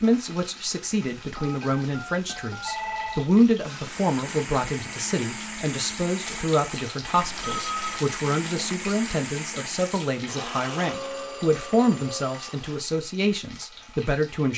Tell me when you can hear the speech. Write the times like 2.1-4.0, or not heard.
0.0-14.5.